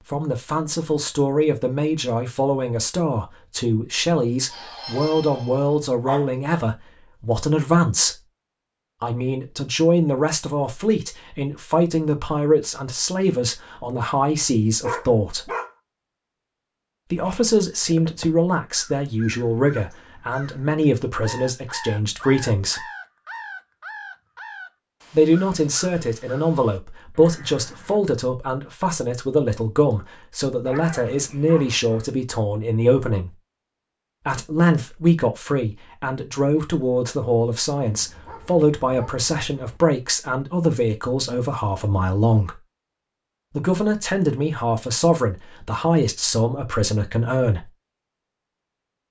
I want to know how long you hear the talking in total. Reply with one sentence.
The talking can be heard for 41 seconds in total.